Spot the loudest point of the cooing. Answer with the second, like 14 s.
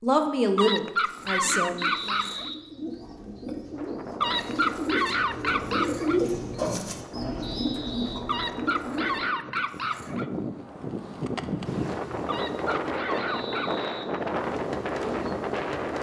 6 s.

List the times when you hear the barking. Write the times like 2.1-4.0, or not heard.
0.6-2.5, 4.2-6.2, 8.2-10.3, 12.2-13.8.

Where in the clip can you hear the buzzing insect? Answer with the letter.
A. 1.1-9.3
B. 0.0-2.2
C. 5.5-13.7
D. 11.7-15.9
D.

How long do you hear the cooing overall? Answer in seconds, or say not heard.
8 s.